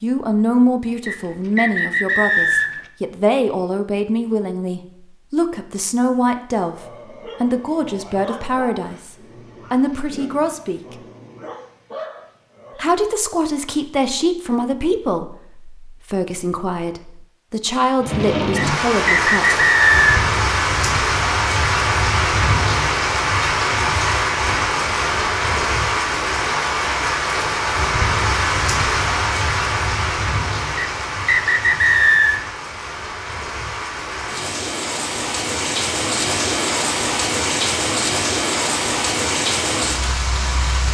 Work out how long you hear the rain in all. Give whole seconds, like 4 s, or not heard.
23 s.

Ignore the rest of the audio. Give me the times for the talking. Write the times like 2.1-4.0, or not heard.
0.0-10.9, 12.8-19.6.